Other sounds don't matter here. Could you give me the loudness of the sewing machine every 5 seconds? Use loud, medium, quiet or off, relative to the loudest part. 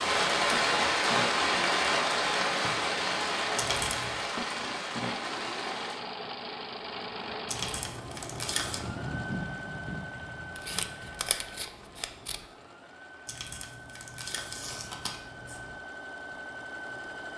loud, loud, medium, loud.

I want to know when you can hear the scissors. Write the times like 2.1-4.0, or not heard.
10.6-12.4.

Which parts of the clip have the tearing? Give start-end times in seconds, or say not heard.
3.5-4.2, 7.5-8.8, 13.2-15.8.